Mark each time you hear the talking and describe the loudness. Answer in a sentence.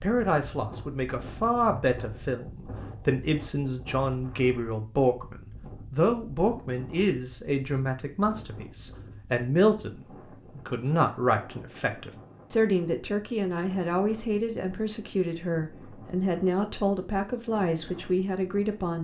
The talking can be heard from 0.0 to 18.9 s, at a steady volume.